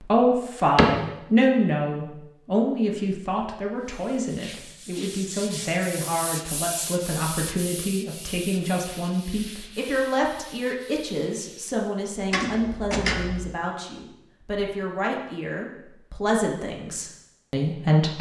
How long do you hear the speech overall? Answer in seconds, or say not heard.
18 s.